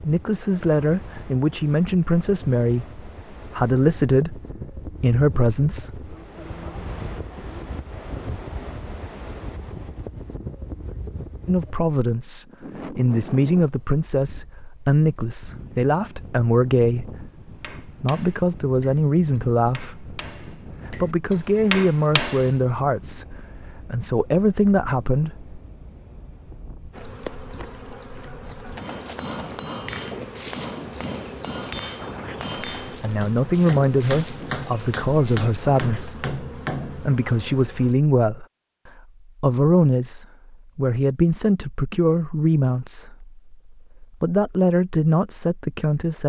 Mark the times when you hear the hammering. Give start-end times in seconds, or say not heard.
17.6-22.6, 28.8-37.4.